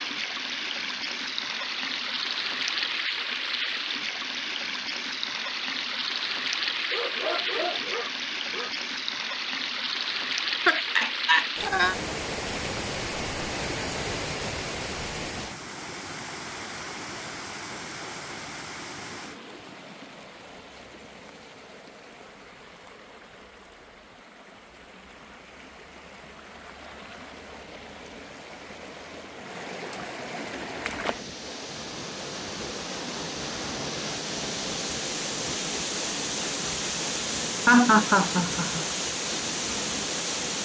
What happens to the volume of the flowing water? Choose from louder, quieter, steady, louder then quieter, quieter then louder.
quieter then louder.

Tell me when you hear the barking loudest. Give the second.
7 s.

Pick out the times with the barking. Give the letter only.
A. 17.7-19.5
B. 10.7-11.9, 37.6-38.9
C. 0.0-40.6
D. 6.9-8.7
D.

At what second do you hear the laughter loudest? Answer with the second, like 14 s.
38 s.